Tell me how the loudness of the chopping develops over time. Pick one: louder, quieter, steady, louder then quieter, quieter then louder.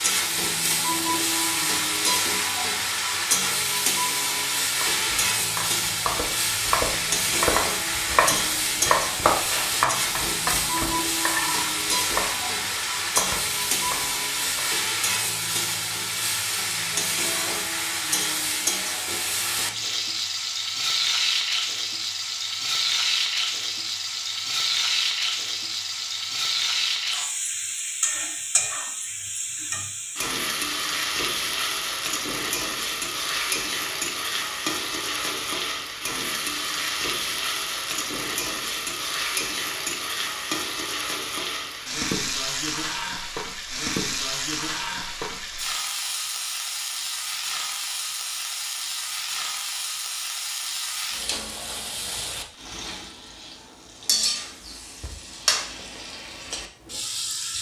louder then quieter.